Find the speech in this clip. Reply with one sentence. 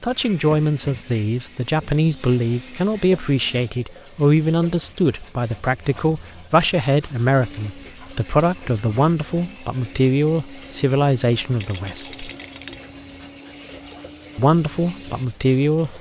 You can hear the speech from 0.0 to 12.2 s and from 14.3 to 15.9 s.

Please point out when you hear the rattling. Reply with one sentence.
You can hear the rattling from 11.6 to 12.8 s.